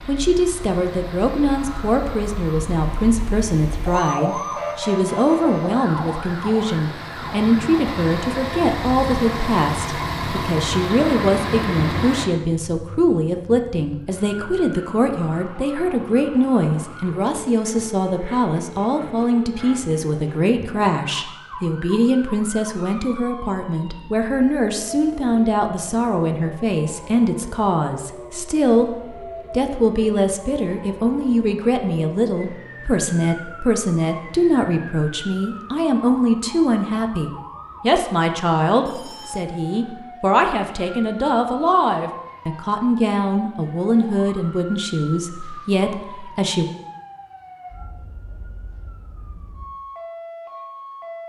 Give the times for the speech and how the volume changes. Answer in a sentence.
You can hear the speech from 0.1 to 46.6 s, at a steady volume.